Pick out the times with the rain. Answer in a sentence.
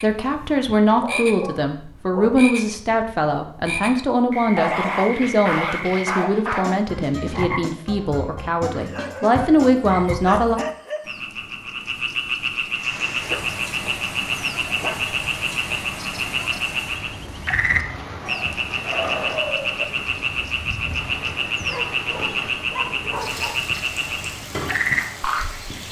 You can hear the rain from 12.7 to 25.8 s.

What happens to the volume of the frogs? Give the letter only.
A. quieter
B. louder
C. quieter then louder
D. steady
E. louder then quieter
B.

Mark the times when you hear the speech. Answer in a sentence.
You can hear the speech from 0.0 to 10.6 s.